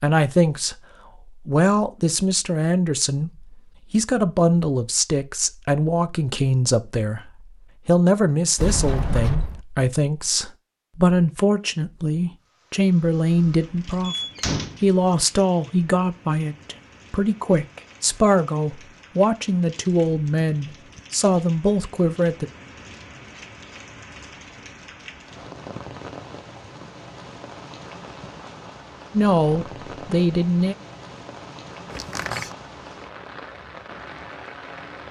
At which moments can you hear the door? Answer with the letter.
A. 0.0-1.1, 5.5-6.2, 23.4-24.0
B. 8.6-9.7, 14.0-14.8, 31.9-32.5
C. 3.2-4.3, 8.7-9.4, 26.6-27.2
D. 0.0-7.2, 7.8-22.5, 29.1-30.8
B.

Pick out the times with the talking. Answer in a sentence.
The talking can be heard from 0.0 to 7.2 s, from 7.8 to 22.5 s and from 29.1 to 30.8 s.